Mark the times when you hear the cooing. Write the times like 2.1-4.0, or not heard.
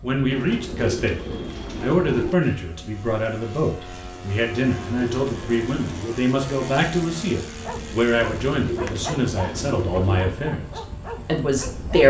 0.3-2.4, 4.5-6.2, 8.2-10.2.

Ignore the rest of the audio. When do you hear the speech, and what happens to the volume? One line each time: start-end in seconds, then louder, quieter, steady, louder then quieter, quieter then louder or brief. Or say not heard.
0.0-12.0 steady.